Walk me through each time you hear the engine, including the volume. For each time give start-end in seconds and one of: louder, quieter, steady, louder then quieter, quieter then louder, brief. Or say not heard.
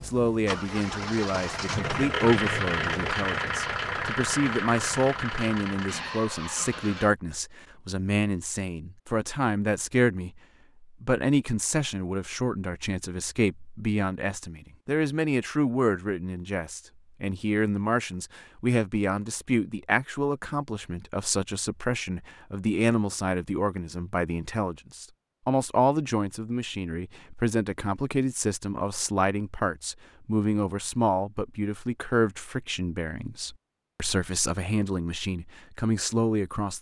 0.0-7.2 louder then quieter.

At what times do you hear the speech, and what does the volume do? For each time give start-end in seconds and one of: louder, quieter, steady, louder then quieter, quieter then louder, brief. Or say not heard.
0.0-36.7 steady.